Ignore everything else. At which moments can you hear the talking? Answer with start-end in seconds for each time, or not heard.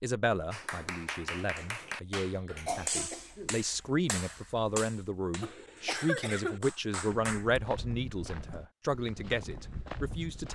0.0-10.5.